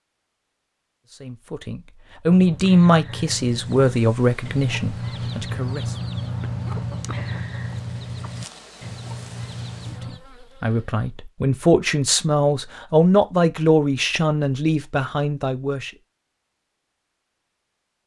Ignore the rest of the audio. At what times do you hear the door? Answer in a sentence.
The door can't be heard in this clip.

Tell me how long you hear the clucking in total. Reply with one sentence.
You can hear the clucking for 8 seconds altogether.